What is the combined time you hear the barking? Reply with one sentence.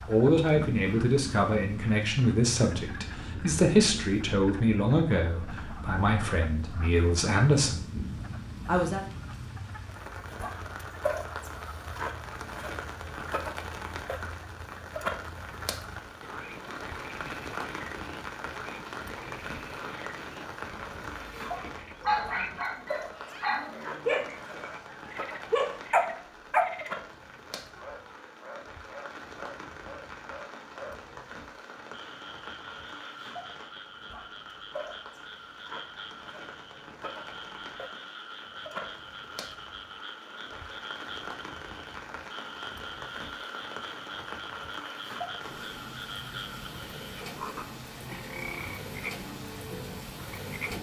The barking can be heard for 5 seconds in total.